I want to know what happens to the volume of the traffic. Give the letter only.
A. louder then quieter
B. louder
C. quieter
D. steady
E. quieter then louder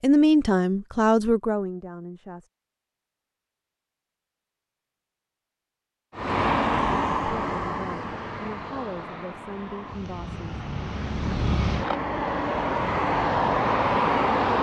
E.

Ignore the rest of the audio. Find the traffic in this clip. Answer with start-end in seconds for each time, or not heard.
6.2-14.5.